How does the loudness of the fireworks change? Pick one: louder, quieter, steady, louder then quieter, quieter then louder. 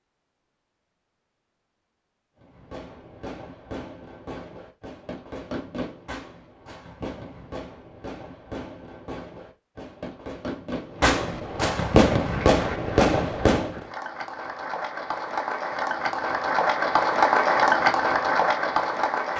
louder.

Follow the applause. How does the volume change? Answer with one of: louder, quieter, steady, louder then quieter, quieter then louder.
louder.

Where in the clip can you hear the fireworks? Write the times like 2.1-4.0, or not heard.
2.4-13.8.